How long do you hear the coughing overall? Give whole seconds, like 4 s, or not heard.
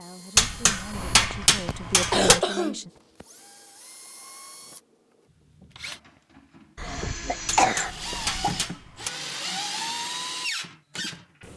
4 s.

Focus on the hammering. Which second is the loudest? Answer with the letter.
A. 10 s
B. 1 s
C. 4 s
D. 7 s
B.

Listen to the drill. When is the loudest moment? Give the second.
10 s.